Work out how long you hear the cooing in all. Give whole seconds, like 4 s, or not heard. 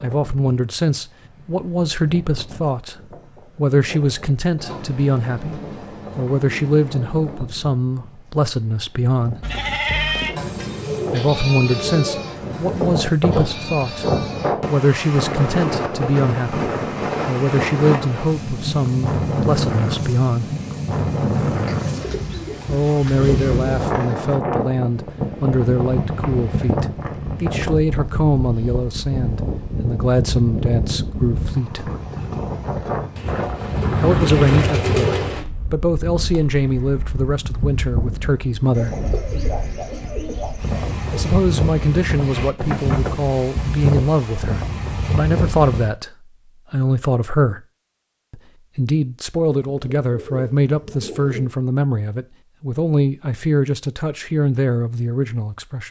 15 s.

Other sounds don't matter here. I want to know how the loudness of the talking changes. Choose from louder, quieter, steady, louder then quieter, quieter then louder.
steady.